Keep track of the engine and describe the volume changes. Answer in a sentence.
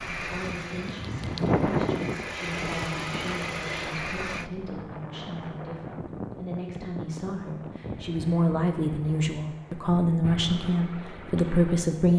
The loudness of the engine goes down, then up.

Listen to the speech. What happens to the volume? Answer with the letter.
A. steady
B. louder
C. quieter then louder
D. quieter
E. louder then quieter
B.